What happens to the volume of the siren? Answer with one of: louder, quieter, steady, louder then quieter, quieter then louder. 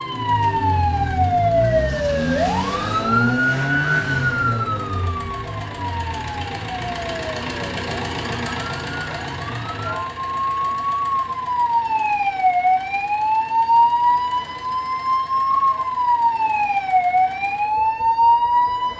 quieter then louder.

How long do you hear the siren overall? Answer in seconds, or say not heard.
19 s.